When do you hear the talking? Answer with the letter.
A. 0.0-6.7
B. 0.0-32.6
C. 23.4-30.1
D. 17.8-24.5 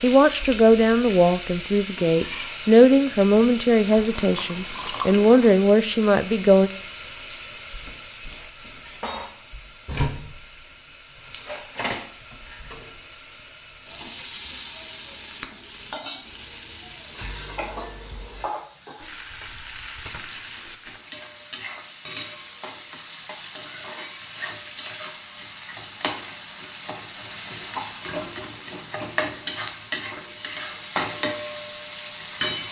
A.